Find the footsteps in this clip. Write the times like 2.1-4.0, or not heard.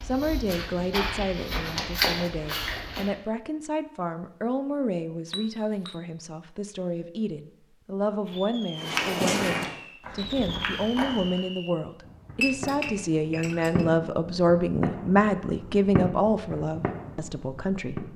0.0-3.1, 8.8-11.4.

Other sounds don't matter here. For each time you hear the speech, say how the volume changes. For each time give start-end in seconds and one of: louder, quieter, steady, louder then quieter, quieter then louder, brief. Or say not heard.
0.0-18.1 louder.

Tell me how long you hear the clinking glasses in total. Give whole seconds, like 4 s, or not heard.
2 s.